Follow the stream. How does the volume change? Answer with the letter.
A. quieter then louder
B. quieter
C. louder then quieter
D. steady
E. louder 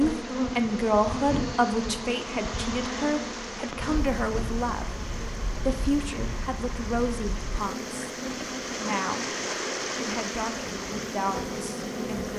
E.